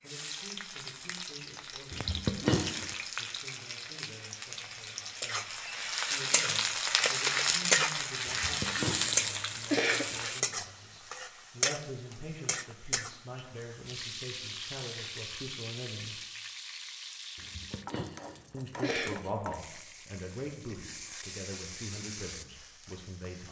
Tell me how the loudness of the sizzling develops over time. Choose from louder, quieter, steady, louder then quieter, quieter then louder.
louder then quieter.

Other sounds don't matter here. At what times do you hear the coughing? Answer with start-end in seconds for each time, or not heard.
1.9-3.0, 8.2-10.2, 17.4-19.1.